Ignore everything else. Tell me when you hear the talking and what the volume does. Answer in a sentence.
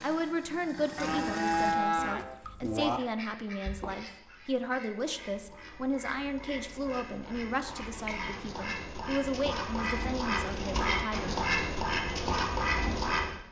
You can hear the talking from 0.0 to 11.4 s, at a steady volume.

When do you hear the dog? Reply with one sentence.
You can't hear the dog here.